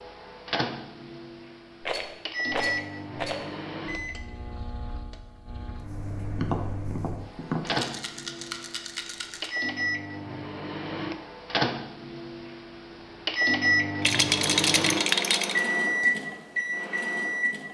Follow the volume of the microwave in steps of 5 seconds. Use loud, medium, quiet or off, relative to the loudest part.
medium, medium, loud, loud.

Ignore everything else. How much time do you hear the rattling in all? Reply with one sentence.
You can hear the rattling for 5 seconds altogether.